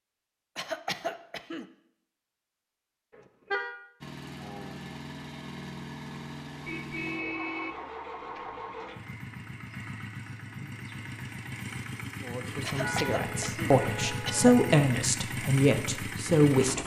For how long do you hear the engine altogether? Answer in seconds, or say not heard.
13 s.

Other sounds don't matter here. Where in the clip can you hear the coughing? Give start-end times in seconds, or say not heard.
0.6-1.6, 12.6-14.5.